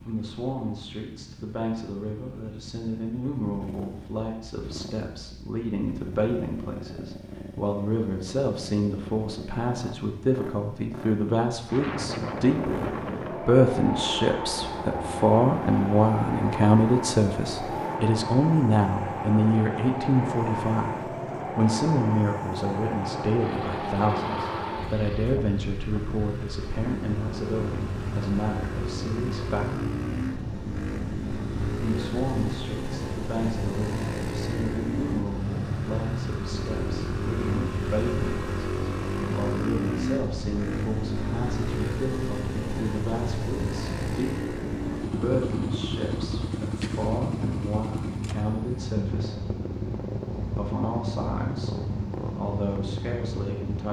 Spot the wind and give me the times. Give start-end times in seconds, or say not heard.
11.7-53.8.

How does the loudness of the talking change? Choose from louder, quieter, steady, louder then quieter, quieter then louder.
louder then quieter.